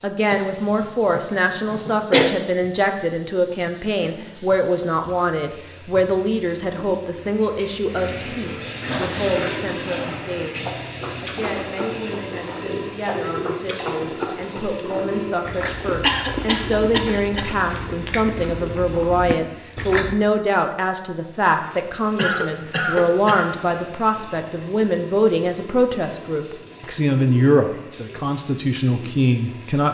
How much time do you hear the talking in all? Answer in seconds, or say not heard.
30 s.